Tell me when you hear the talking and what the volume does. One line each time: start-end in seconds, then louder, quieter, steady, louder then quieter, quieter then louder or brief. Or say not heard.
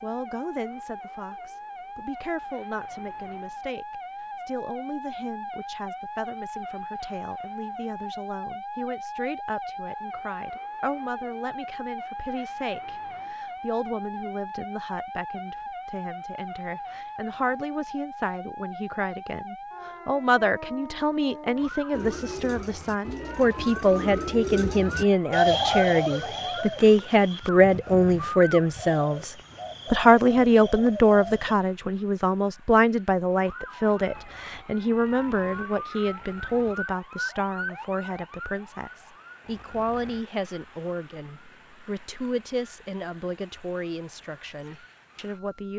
0.0-45.7 louder then quieter.